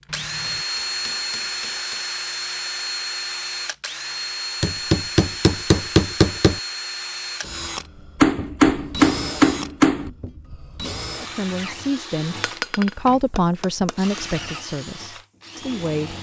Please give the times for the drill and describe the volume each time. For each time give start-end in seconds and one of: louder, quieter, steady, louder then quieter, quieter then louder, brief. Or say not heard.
0.1-16.1 quieter.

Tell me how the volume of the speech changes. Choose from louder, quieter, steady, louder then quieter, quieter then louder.
louder then quieter.